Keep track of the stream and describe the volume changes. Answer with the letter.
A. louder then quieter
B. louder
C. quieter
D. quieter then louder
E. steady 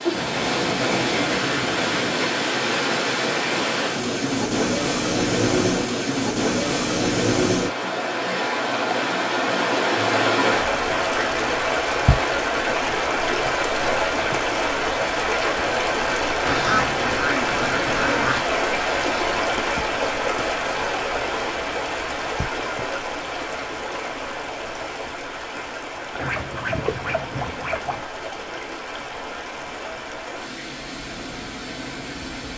C.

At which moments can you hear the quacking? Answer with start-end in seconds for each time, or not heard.
0.1-2.1, 16.4-18.4, 26.1-28.1.